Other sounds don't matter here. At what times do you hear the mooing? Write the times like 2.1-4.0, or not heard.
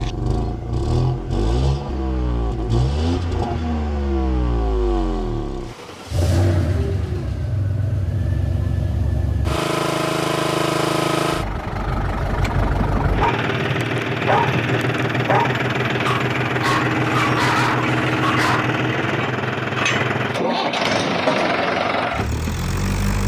not heard.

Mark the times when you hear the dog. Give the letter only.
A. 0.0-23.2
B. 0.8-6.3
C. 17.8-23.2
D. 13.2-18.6
D.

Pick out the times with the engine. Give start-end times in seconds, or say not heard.
0.0-23.2.